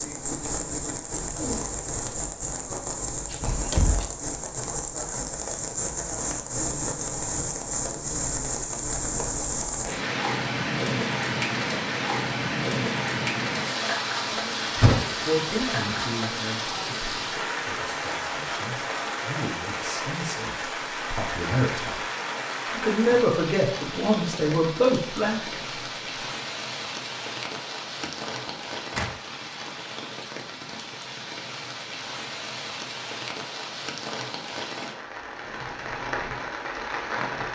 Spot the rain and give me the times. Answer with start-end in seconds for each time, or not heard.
0.0-37.4.